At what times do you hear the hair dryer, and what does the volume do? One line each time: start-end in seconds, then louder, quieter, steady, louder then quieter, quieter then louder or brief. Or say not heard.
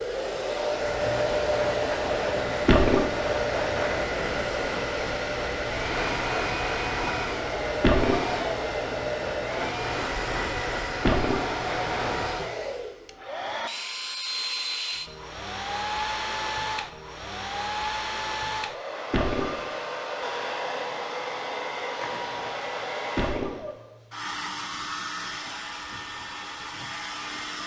0.0-27.6 quieter.